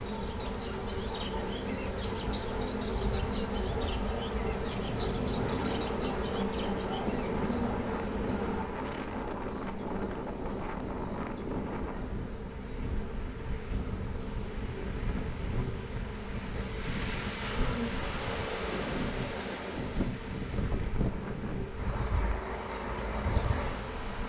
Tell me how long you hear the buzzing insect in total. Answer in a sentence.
You can hear the buzzing insect for 24 seconds altogether.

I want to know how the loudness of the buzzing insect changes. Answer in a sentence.
The loudness of the buzzing insect goes down.